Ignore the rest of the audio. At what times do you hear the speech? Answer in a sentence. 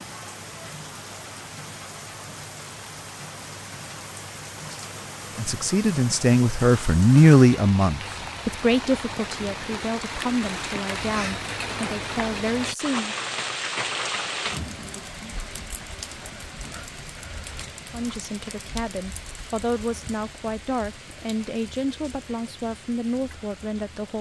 You can hear the speech from 5.3 to 13.2 s and from 17.9 to 24.1 s.